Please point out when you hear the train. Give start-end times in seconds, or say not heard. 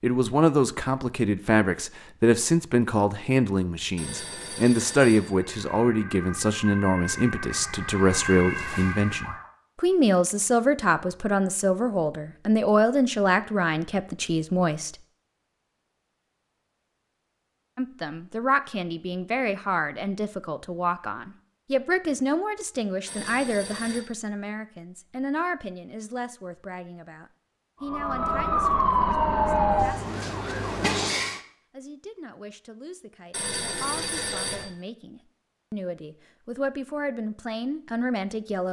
not heard.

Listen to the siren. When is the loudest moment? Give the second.
29 s.